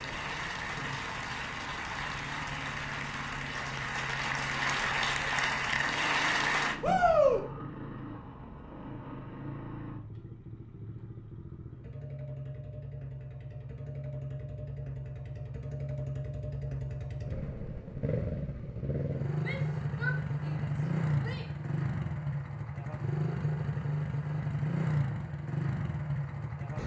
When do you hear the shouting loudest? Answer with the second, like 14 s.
7 s.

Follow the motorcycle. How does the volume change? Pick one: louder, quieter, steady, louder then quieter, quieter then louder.
louder.